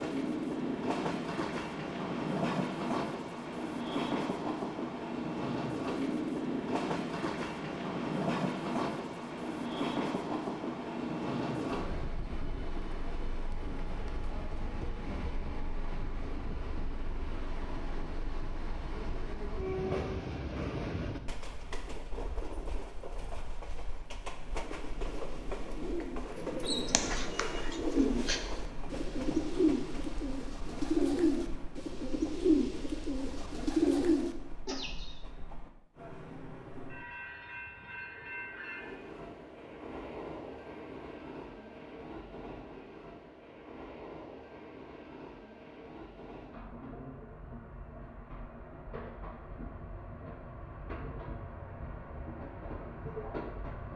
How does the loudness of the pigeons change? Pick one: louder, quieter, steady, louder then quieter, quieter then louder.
louder.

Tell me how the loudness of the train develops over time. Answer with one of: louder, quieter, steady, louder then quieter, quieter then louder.
quieter.